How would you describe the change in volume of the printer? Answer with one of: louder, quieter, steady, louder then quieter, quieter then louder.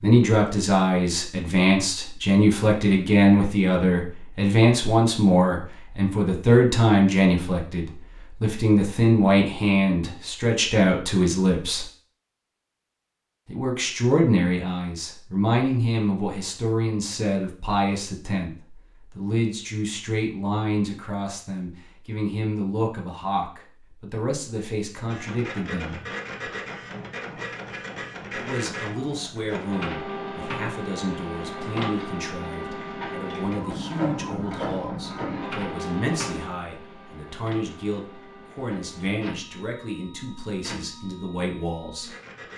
quieter.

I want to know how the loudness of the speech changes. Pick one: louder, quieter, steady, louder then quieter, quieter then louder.
quieter.